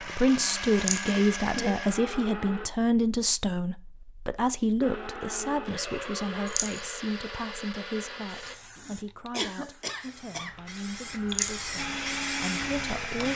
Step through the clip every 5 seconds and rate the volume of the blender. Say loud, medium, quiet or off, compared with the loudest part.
loud, medium, loud.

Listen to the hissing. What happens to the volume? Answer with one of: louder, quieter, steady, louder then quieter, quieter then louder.
louder.